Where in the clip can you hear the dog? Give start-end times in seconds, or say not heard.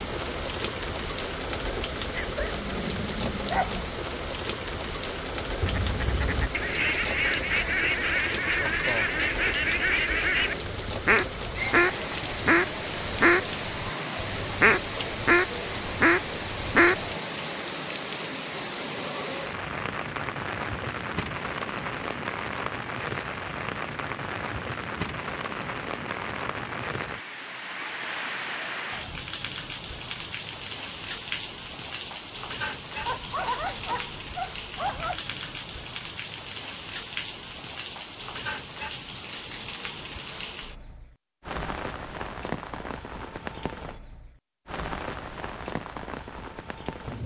2.1-3.9, 33.0-35.2.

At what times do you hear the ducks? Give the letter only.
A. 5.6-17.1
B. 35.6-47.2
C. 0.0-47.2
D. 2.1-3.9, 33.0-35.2
A.